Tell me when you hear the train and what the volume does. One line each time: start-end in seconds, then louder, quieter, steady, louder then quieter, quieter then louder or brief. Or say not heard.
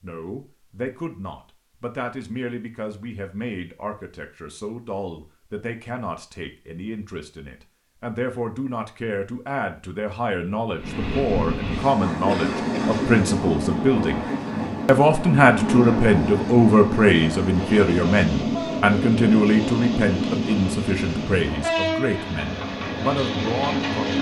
10.8-24.1 steady.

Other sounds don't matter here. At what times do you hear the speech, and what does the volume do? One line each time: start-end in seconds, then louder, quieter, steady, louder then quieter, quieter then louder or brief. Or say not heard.
0.0-14.2 louder
14.8-24.1 quieter.